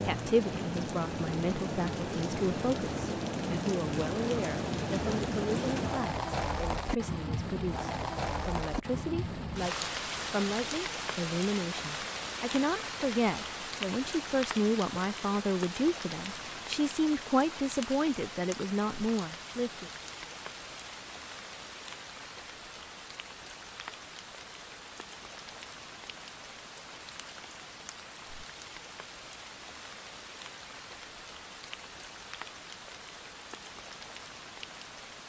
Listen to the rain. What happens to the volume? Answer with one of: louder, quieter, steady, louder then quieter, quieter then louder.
quieter.